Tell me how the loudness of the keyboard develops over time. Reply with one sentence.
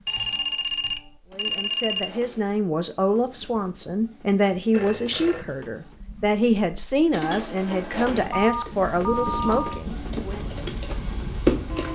The loudness of the keyboard goes down, then up.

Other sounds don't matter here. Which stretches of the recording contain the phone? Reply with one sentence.
The phone can be heard from 0.1 to 2.1 s, from 4.7 to 5.5 s and from 8.3 to 9.8 s.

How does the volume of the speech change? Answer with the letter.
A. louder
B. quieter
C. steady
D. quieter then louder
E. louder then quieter
C.